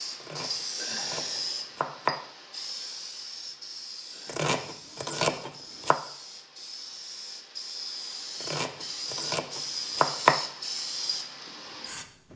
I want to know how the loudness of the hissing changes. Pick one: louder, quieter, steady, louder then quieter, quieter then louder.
quieter then louder.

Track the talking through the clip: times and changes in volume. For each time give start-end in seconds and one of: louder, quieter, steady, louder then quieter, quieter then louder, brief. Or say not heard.
not heard.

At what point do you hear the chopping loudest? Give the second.
10 s.